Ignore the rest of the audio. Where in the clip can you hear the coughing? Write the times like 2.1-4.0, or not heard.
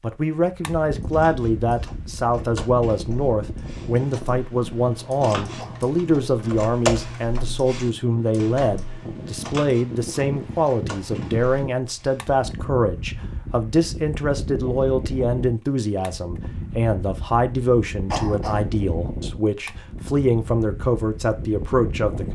5.2-5.8, 18.1-18.6.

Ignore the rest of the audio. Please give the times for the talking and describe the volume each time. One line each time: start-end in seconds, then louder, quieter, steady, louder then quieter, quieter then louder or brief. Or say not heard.
0.0-22.2 steady.